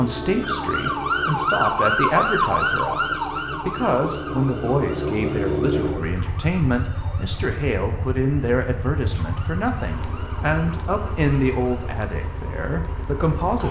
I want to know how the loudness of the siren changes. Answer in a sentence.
The loudness of the siren goes down.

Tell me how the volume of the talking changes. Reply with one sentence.
The loudness of the talking stays about the same.